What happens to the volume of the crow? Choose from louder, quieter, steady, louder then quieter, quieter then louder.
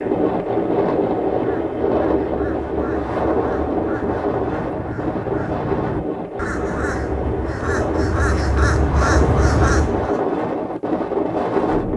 louder.